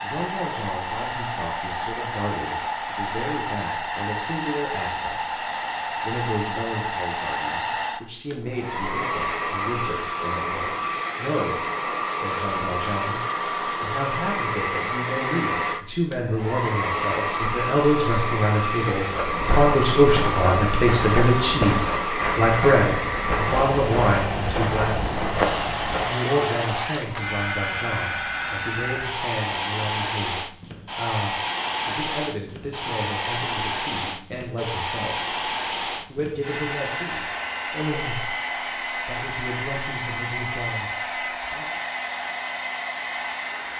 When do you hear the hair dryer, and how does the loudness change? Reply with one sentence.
You can hear the hair dryer from 0.0 to 43.7 s, at a steady volume.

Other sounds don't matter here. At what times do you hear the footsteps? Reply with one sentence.
The footsteps can be heard from 19.1 to 26.2 s.